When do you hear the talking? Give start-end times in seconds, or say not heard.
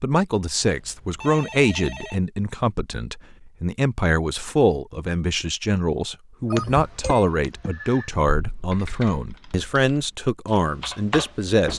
0.0-11.7.